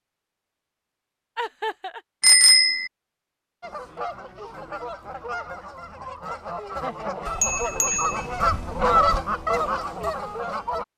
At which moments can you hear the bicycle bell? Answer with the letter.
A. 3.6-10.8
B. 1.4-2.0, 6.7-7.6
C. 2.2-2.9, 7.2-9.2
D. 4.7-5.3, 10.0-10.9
C.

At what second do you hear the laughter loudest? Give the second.
2 s.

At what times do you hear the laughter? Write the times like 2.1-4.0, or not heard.
1.4-2.0, 6.7-7.6.